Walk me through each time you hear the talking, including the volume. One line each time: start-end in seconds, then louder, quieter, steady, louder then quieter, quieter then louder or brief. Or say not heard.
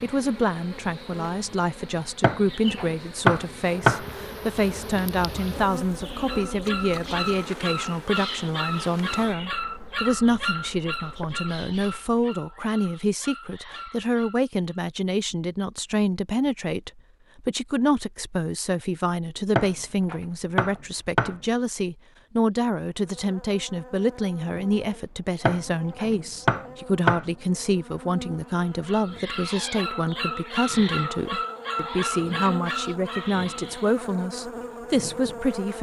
0.0-35.7 steady.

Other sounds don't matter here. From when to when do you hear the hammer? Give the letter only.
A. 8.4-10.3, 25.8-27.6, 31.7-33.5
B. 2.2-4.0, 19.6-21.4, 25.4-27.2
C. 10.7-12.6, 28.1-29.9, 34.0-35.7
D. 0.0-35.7
B.